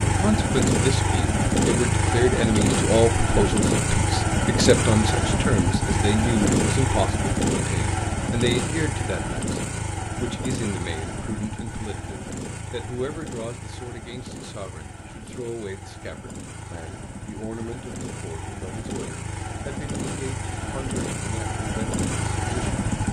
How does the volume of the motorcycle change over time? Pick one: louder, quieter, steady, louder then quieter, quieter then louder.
quieter then louder.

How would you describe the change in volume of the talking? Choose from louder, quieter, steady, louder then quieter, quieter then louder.
quieter.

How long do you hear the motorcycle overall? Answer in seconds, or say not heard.
23 s.